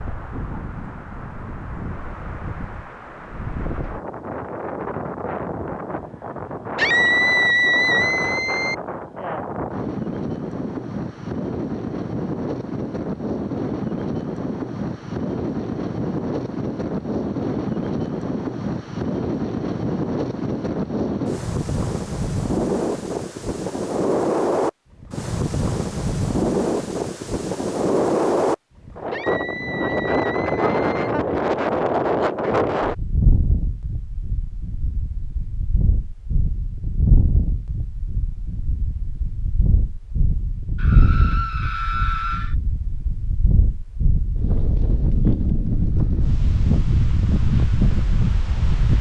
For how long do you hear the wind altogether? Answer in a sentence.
The wind can be heard for 49 seconds in total.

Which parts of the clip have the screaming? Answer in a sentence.
You can hear the screaming from 6.8 to 8.8 s, from 29.1 to 31.1 s and from 40.8 to 42.5 s.